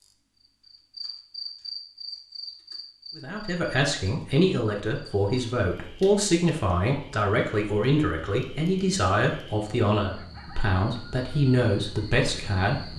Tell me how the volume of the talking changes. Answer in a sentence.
The volume of the talking stays about the same.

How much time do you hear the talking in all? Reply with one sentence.
The talking can be heard for 10 seconds in total.